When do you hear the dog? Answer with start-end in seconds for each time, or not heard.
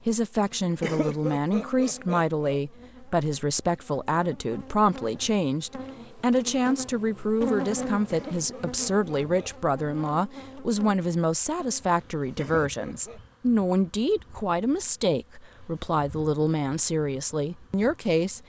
not heard.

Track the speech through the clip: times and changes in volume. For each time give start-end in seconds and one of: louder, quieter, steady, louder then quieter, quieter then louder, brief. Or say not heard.
0.1-18.4 steady.